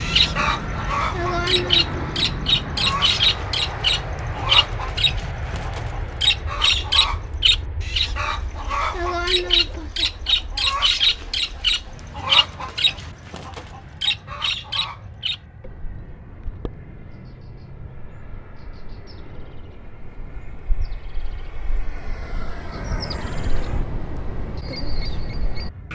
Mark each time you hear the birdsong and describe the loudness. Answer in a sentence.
You can hear the birdsong from 0.0 to 25.8 s, getting quieter then louder.